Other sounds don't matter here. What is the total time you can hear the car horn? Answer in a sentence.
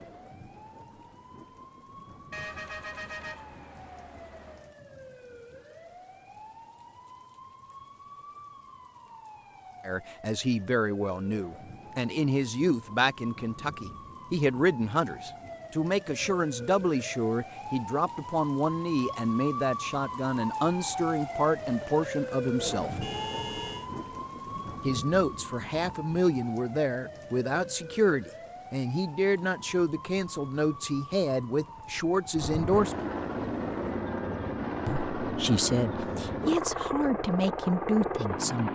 The car horn can be heard for 3 seconds in total.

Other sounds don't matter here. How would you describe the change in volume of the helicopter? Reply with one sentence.
The loudness of the helicopter goes up.